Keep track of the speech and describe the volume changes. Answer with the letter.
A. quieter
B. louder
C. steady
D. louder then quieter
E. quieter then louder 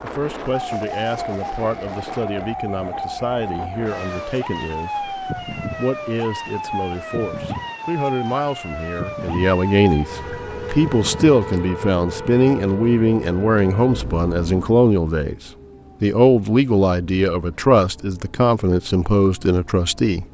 B.